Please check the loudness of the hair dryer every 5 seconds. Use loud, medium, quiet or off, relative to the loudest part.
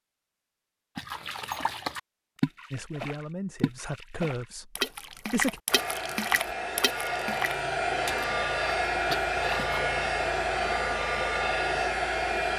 off, loud, loud.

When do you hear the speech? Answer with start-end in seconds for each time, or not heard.
2.7-5.6.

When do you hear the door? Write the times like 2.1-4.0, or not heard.
not heard.